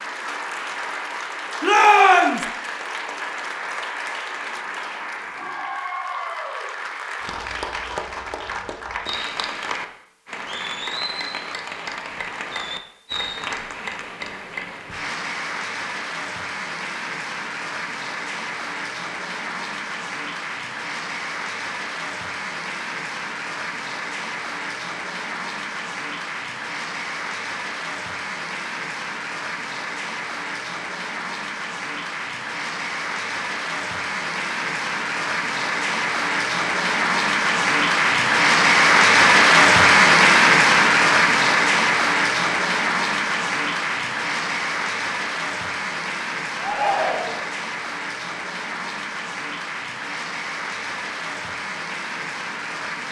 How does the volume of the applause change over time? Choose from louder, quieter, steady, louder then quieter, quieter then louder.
louder then quieter.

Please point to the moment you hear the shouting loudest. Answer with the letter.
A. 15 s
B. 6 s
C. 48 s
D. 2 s
D.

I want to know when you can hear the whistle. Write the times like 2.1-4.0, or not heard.
not heard.